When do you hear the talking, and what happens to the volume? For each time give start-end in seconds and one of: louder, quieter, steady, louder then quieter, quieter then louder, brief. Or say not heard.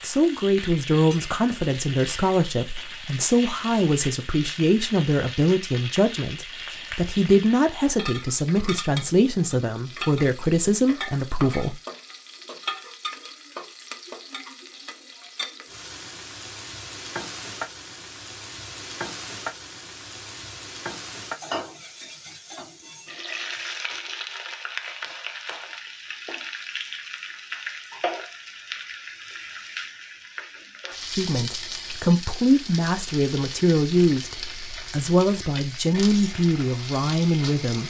0.0-11.8 steady
31.1-37.8 steady.